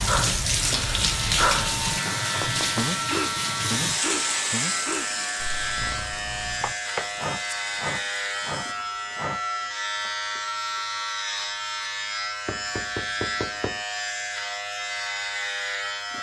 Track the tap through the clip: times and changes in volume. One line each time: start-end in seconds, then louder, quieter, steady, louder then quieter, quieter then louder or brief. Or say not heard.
0.0-8.6 quieter.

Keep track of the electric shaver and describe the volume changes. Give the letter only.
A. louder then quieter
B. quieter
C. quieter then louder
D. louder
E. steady
E.